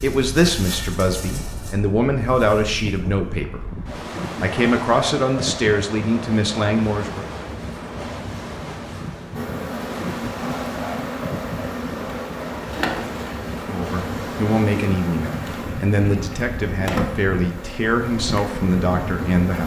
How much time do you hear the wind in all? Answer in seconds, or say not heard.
19 s.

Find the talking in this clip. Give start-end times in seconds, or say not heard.
0.0-7.2, 13.7-19.6.